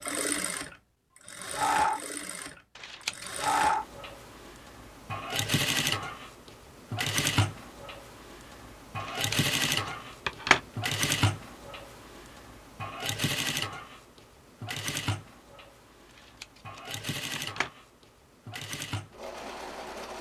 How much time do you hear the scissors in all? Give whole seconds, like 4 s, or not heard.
4 s.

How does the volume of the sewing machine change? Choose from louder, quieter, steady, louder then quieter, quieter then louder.
quieter.